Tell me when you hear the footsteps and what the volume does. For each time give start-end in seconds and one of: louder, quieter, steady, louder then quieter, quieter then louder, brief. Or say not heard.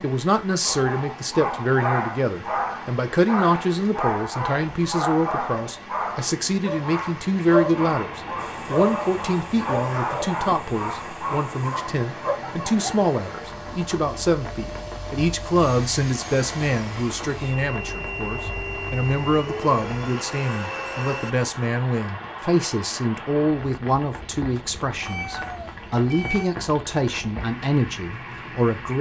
not heard.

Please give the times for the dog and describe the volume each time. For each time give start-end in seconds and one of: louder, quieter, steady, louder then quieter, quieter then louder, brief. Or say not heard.
0.6-12.4 steady.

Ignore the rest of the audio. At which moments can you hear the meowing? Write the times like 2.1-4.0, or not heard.
25.0-26.6.